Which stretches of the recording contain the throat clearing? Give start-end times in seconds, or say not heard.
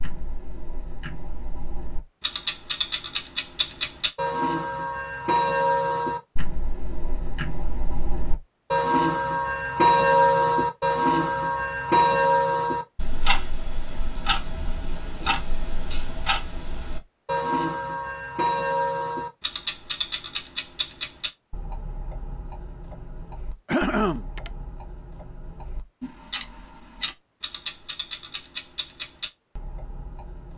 23.6-24.5.